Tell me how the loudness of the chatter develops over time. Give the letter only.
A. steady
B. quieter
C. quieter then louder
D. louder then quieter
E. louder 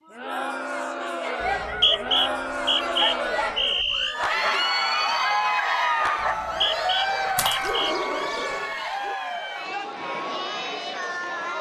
D.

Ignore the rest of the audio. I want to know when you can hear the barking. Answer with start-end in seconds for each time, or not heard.
1.2-9.2.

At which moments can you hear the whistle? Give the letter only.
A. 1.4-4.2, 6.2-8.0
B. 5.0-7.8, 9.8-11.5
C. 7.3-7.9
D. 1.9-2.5
A.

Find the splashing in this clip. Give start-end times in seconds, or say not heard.
7.3-7.9.